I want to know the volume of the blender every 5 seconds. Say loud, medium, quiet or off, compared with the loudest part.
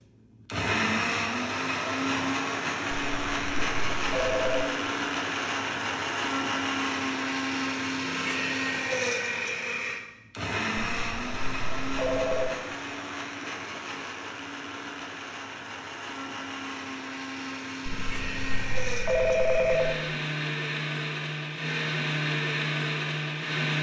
loud, loud, medium, medium, loud.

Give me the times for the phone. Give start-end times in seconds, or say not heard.
2.9-4.7, 10.8-12.6, 17.9-20.0.